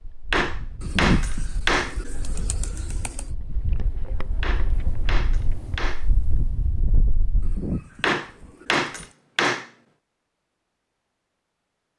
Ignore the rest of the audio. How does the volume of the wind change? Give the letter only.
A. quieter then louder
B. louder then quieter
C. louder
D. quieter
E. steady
C.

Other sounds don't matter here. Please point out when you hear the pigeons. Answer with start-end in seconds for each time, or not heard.
0.8-3.2, 7.4-9.2.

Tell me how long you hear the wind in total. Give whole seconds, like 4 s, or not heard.
8 s.